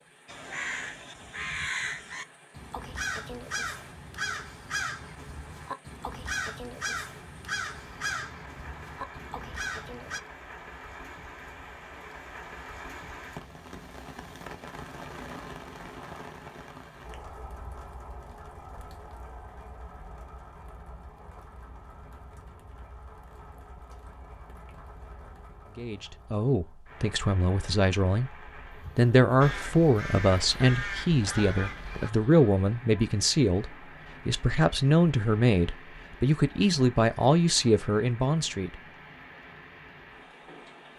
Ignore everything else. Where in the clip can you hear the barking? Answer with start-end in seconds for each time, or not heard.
not heard.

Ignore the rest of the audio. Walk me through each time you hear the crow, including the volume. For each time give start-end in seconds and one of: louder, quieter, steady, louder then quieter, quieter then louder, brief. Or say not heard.
0.2-10.2 steady
29.4-32.1 brief.